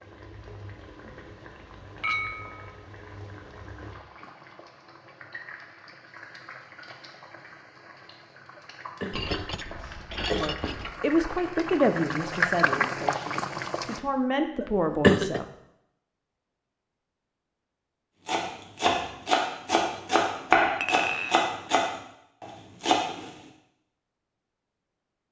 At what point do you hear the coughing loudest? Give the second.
15 s.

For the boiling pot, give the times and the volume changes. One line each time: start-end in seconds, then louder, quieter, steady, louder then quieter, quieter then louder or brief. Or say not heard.
0.0-14.0 louder.